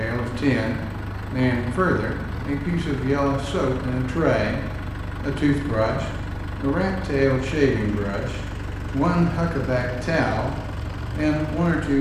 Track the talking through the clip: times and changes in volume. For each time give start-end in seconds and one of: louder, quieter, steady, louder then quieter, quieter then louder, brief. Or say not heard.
0.0-11.9 steady.